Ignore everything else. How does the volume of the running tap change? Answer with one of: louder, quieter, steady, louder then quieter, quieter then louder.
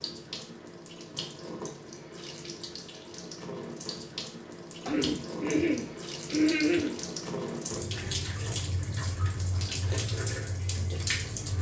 louder.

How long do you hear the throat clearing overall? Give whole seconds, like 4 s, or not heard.
2 s.